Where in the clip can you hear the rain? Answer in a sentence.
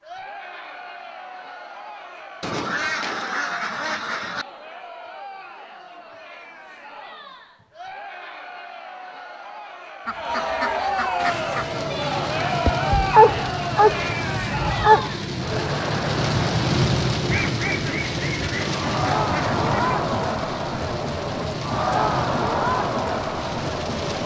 The rain can be heard from 11.2 to 24.2 s.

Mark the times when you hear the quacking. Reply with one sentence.
The quacking can be heard from 2.4 to 4.5 s, from 10.1 to 11.8 s and from 17.2 to 20.0 s.